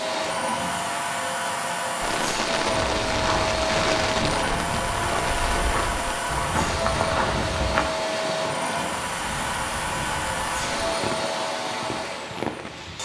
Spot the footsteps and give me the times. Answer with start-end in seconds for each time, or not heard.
2.6-7.8.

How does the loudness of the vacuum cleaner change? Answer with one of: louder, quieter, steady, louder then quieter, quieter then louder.
steady.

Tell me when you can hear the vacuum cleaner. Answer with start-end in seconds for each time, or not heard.
0.0-13.0.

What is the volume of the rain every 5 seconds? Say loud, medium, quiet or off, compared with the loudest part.
loud, medium, medium.